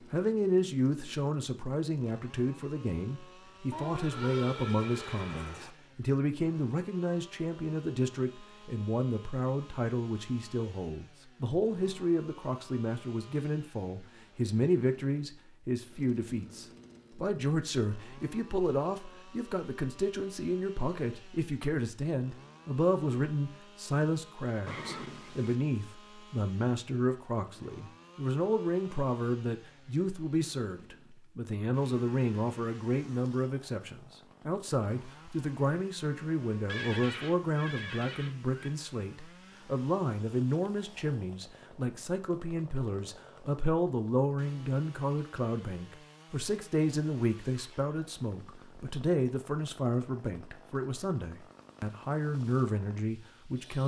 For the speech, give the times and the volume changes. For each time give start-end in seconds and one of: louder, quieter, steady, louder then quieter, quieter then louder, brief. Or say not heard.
0.1-53.8 steady.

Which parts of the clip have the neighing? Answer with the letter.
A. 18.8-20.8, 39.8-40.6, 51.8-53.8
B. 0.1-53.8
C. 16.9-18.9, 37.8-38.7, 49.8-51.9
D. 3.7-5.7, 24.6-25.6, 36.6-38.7
D.